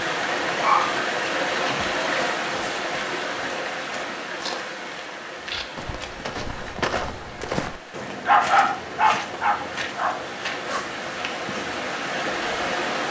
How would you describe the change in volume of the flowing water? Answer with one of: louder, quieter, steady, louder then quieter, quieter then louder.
quieter then louder.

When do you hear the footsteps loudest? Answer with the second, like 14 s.
7 s.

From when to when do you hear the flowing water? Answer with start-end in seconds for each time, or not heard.
0.0-13.0.